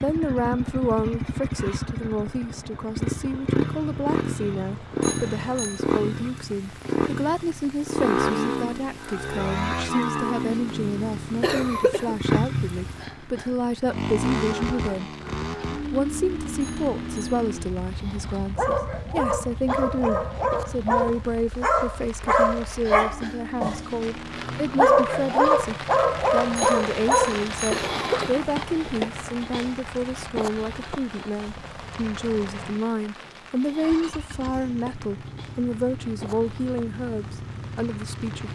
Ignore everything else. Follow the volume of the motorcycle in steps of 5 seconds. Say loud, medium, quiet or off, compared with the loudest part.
loud, loud, loud, medium, quiet, quiet, quiet, medium.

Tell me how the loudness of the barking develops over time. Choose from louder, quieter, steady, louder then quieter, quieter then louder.
louder.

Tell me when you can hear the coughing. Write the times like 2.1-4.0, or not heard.
11.4-12.2, 27.7-28.4.